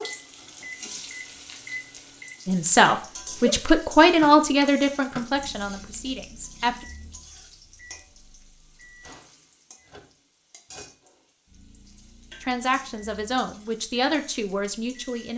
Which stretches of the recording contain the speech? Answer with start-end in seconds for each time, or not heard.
2.5-6.8, 12.4-15.3.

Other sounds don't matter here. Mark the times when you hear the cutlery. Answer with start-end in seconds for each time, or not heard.
not heard.